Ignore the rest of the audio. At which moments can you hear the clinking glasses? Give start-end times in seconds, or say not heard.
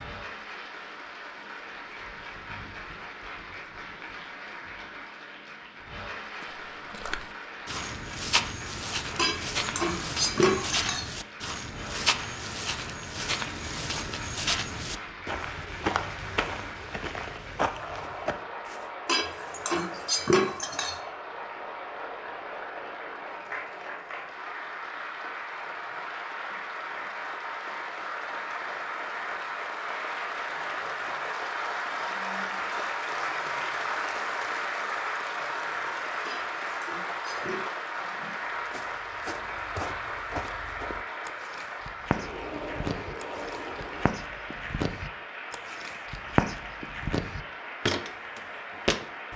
9.2-11.1, 19.1-21.0, 36.2-37.7.